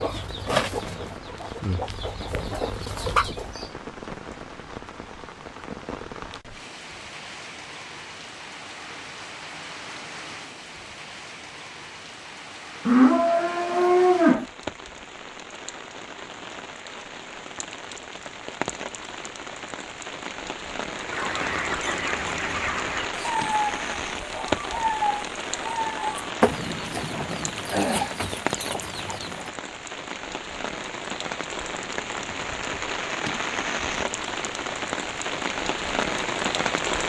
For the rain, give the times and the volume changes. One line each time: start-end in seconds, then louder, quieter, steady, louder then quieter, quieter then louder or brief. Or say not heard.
0.1-37.0 louder.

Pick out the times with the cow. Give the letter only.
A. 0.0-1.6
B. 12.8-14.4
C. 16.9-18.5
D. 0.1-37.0
B.